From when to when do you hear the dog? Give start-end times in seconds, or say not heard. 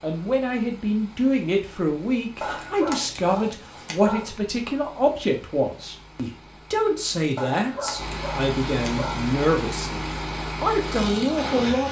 2.4-4.3, 7.3-9.3.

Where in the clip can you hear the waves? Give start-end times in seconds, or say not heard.
not heard.